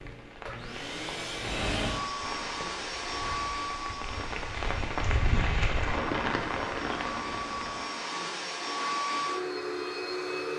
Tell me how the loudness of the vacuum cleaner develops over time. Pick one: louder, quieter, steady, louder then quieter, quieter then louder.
quieter then louder.